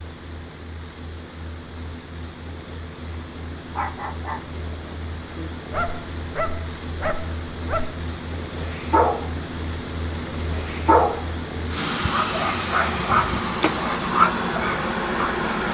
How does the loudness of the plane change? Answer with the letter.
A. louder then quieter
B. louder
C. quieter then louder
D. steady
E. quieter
B.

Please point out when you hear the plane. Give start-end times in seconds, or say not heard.
0.0-15.6.